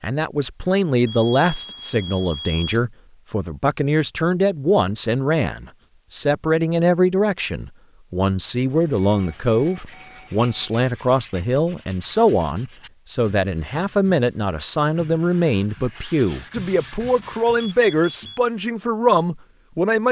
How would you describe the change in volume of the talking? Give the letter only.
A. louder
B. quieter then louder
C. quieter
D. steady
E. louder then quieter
D.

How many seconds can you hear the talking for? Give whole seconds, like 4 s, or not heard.
20 s.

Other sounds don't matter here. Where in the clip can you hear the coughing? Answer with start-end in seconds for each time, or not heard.
not heard.